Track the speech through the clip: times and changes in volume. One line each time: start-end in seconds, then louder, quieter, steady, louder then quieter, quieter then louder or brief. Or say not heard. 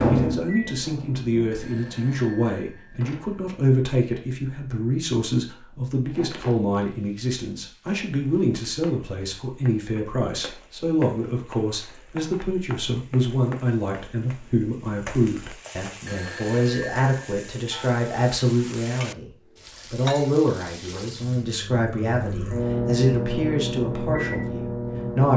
0.0-25.3 steady.